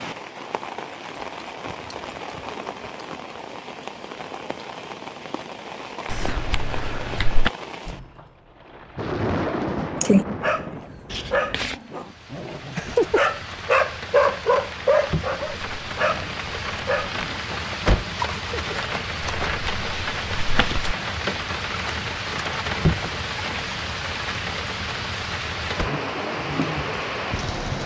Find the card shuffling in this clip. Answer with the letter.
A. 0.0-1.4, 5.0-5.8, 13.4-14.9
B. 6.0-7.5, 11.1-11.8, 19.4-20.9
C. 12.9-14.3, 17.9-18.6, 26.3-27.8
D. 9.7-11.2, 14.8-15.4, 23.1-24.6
B.